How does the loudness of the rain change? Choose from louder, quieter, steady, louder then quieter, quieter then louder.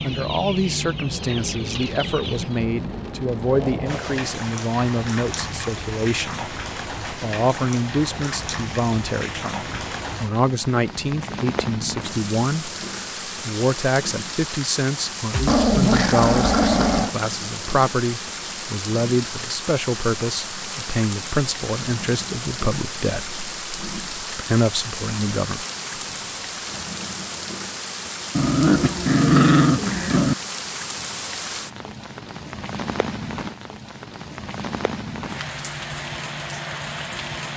steady.